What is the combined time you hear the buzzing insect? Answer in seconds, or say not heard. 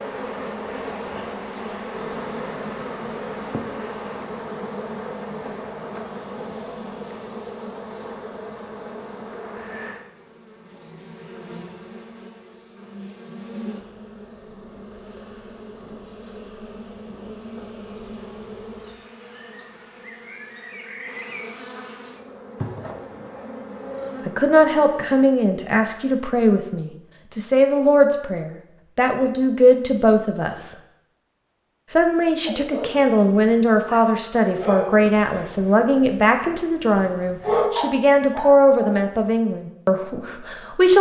25 s.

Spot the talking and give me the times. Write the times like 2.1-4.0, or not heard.
24.2-30.8, 31.9-40.9.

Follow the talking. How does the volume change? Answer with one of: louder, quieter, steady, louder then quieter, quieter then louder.
steady.